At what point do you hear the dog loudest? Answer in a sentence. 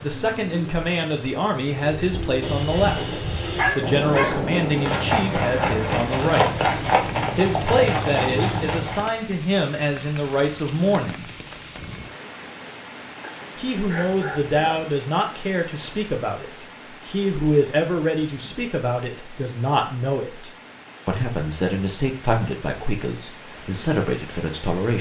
The volume of the dog peaks at 4 seconds.